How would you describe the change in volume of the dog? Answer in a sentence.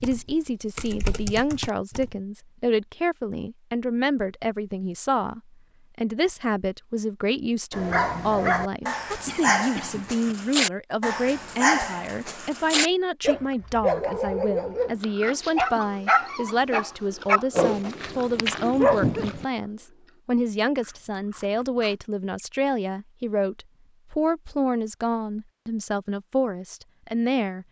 The loudness of the dog stays about the same.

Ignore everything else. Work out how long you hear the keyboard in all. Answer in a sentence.
The keyboard can be heard for 2 seconds in total.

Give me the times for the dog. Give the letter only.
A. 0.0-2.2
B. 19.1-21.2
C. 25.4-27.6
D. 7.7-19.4
D.